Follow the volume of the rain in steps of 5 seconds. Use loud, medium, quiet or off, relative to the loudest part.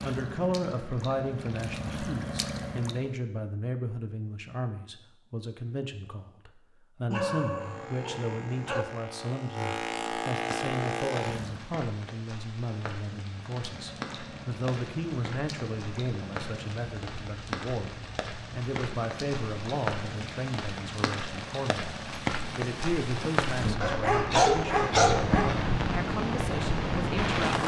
off, off, medium, medium, loud, loud.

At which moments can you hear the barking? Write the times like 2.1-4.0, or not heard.
7.1-8.8, 23.8-25.6.